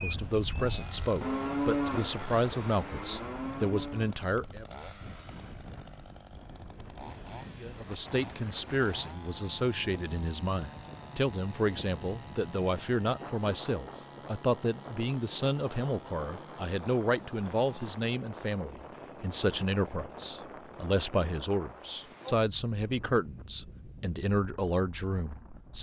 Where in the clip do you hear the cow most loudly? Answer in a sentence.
The loudest moment of the cow is at 2 seconds.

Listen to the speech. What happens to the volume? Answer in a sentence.
The volume of the speech stays about the same.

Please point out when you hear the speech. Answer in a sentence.
The speech can be heard from 0.0 to 4.7 s and from 7.6 to 25.7 s.